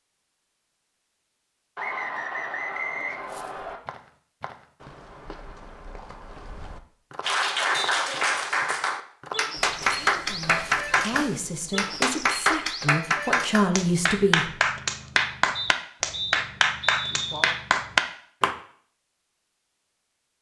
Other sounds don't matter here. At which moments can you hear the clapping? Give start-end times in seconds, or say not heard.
7.2-18.6.